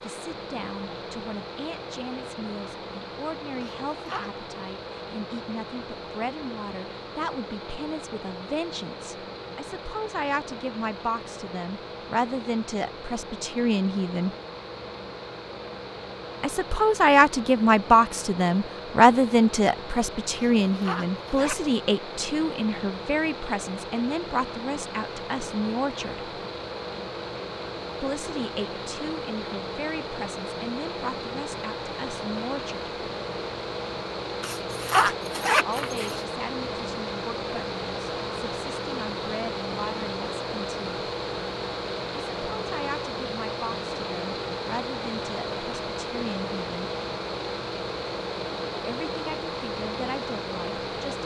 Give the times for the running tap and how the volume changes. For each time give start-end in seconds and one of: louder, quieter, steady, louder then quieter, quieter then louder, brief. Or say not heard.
not heard.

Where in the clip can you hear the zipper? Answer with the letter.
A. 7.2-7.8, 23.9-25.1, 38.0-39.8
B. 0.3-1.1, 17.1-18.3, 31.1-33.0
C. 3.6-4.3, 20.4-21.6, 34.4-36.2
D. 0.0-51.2
C.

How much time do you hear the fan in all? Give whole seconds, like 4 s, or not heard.
51 s.